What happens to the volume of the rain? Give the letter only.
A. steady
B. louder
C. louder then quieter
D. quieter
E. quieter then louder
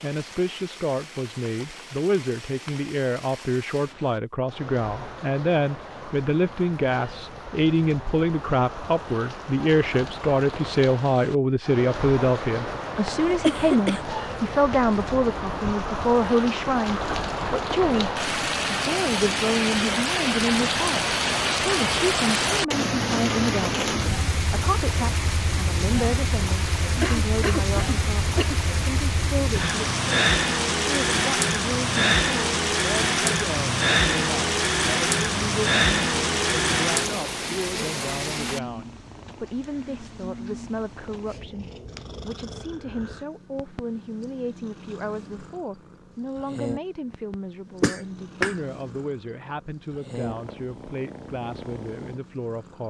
B.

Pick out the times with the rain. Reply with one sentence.
The rain can be heard from 0.0 to 38.6 s.